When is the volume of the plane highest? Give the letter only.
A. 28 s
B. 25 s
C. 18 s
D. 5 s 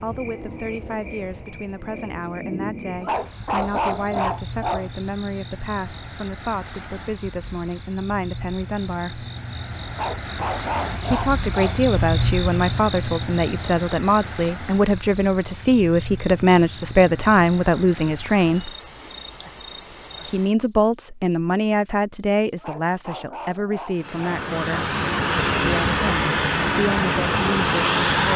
A.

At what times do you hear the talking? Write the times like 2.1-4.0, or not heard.
0.0-9.2, 11.0-18.7, 20.2-24.9, 25.6-28.3.